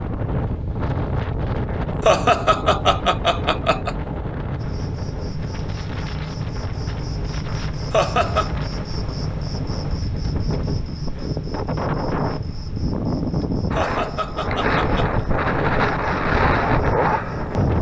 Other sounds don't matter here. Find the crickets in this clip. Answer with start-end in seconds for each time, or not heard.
4.5-17.7.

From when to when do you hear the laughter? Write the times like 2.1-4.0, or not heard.
2.0-4.0, 7.9-8.5, 13.8-15.2.